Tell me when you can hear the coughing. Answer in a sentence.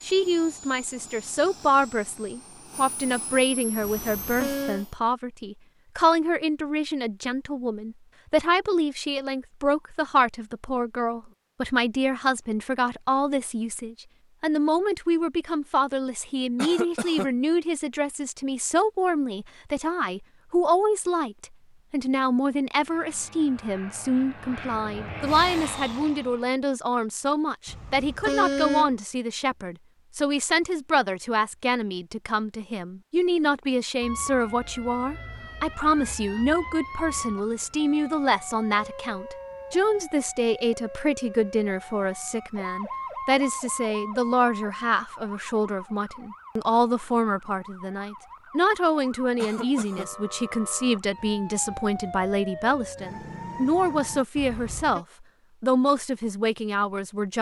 You can hear the coughing from 16.6 to 17.3 s and from 49.4 to 50.1 s.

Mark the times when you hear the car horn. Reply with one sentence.
You can hear the car horn from 3.8 to 4.8 s, from 27.6 to 28.9 s and from 54.4 to 55.0 s.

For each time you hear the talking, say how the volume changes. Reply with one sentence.
You can hear the talking from 0.0 to 57.3 s, at a steady volume.